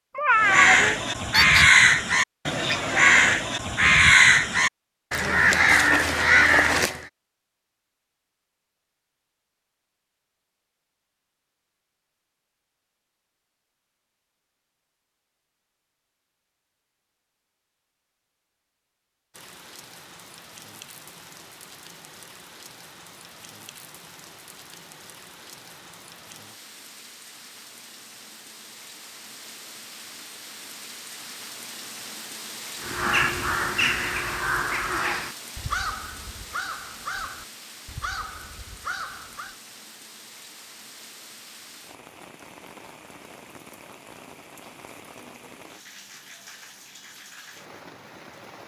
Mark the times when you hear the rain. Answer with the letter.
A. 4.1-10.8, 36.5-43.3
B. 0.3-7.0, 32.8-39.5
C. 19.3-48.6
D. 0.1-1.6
C.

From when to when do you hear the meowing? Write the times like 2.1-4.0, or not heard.
0.1-1.6.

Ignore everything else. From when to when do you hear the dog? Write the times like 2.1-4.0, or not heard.
not heard.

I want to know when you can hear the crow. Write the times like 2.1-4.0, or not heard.
0.3-7.0, 32.8-39.5.